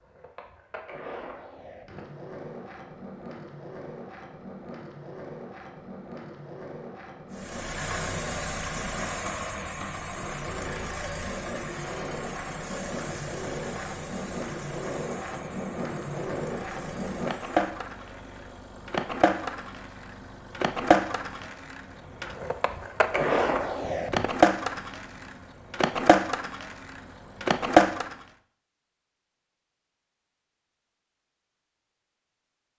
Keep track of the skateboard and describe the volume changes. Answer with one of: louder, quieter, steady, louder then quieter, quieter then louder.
louder.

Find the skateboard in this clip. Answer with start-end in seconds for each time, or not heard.
0.0-28.2.